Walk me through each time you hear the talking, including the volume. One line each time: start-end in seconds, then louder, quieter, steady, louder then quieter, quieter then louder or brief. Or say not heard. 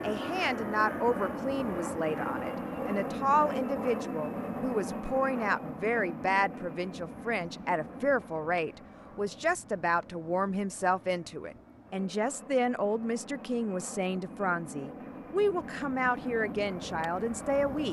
0.0-17.8 steady.